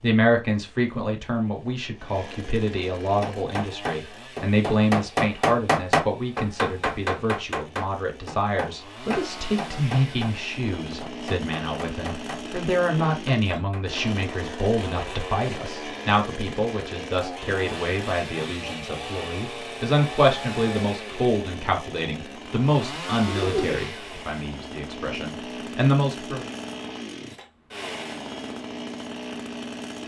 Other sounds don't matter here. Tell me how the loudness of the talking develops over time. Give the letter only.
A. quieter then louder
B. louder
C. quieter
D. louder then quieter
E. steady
E.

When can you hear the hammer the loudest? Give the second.
6 s.